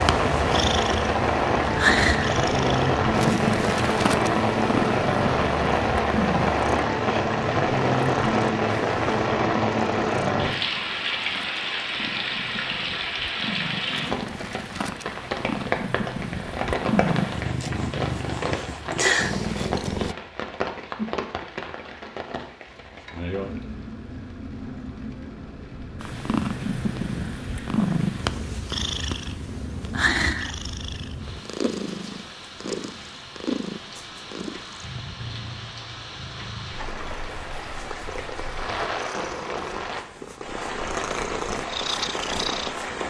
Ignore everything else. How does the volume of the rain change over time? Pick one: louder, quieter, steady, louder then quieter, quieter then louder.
quieter then louder.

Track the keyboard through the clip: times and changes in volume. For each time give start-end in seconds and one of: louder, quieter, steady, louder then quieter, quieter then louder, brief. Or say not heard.
not heard.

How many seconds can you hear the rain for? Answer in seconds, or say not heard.
43 s.